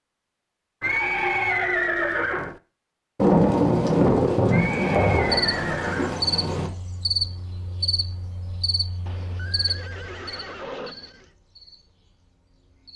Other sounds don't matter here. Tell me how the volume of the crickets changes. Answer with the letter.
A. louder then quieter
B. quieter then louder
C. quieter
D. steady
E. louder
C.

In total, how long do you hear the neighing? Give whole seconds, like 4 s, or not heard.
6 s.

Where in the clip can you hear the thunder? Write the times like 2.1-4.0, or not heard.
3.1-6.7.